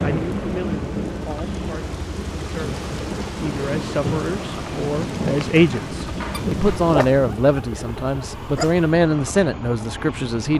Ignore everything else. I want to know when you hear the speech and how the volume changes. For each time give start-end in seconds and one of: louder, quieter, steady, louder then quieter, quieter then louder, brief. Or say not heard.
0.0-10.5 louder.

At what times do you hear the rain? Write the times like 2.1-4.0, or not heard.
0.0-7.5.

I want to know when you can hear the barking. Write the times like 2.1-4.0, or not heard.
6.3-8.8.